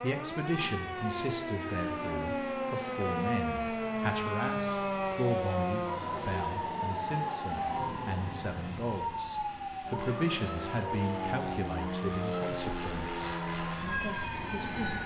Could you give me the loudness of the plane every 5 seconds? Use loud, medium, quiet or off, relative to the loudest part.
medium, medium, loud.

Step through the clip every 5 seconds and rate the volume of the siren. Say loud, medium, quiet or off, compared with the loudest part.
loud, loud, medium.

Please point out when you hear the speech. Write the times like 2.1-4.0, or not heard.
0.0-15.0.